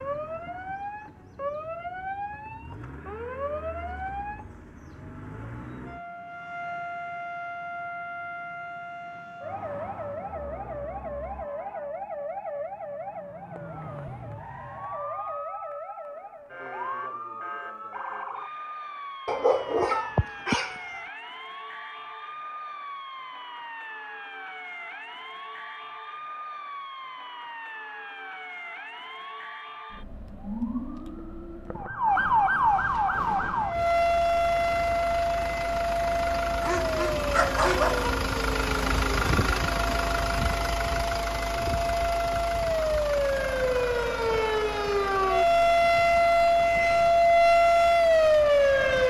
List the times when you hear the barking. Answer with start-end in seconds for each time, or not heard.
19.2-21.0, 36.6-38.1.